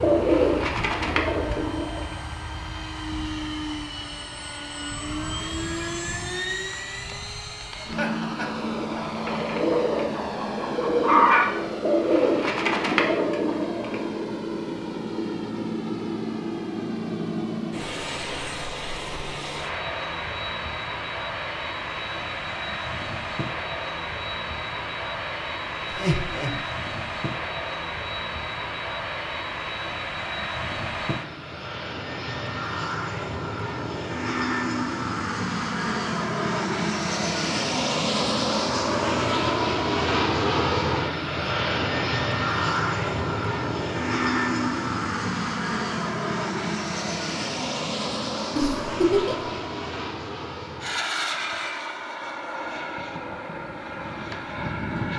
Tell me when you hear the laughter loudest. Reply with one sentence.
The volume of the laughter peaks at 49 seconds.